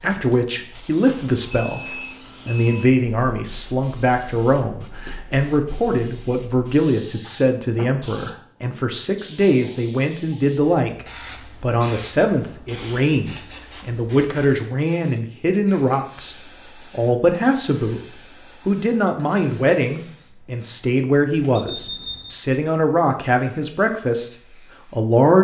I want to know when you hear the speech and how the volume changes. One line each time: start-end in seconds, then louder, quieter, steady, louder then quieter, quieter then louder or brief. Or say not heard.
0.0-25.3 steady.